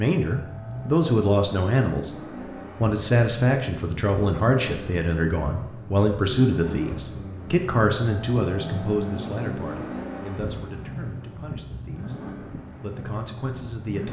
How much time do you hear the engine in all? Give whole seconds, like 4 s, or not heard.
14 s.